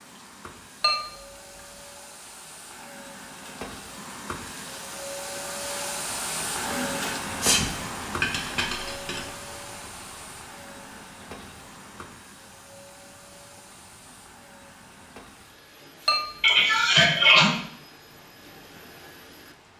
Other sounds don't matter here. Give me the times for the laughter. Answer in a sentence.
The laughter can't be heard in this clip.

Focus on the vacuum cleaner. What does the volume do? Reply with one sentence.
The volume of the vacuum cleaner goes up, then down.